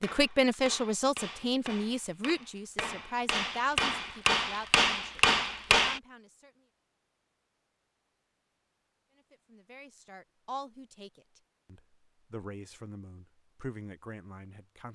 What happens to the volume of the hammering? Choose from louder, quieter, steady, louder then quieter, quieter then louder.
louder.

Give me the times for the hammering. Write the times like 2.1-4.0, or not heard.
0.0-6.0.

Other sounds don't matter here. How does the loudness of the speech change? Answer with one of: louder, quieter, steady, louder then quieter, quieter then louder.
quieter.